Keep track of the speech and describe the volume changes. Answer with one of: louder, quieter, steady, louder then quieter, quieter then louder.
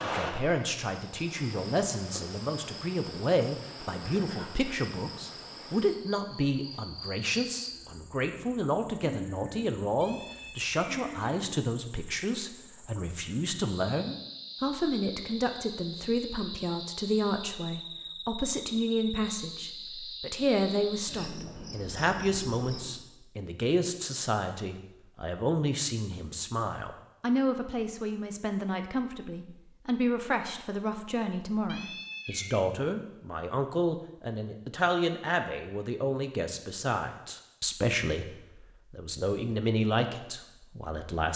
steady.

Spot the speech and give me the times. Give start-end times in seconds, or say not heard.
0.0-41.3.